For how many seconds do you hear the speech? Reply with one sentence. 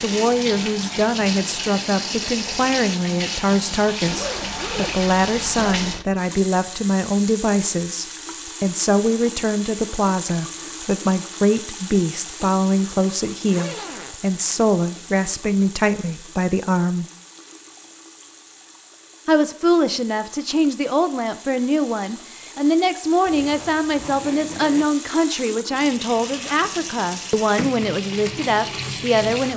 The speech can be heard for 27 seconds in total.